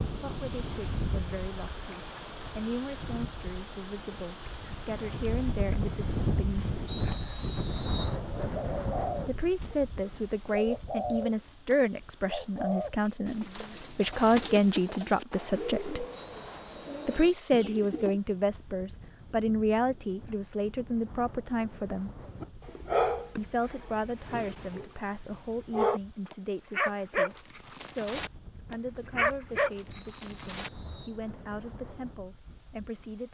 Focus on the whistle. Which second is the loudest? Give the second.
7 s.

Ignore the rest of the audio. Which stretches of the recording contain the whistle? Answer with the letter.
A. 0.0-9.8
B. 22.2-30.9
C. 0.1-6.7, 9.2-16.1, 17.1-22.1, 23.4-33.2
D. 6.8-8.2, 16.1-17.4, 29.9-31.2
D.